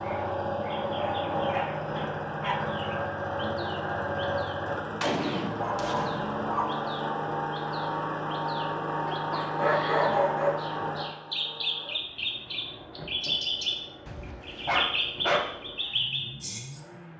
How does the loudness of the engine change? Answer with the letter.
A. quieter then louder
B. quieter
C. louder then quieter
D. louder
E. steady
B.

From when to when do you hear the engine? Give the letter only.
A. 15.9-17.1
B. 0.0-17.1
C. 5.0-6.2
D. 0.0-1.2
B.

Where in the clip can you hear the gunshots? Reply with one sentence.
You can hear the gunshots from 5.0 to 6.2 s.